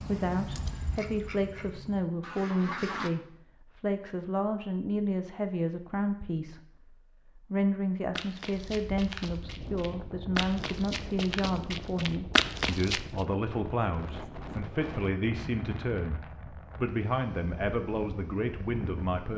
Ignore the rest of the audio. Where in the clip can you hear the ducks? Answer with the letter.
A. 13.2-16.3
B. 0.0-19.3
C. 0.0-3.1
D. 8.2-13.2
C.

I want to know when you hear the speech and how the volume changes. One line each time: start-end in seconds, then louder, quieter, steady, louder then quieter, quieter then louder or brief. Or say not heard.
0.0-19.3 steady.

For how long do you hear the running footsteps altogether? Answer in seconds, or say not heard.
5 s.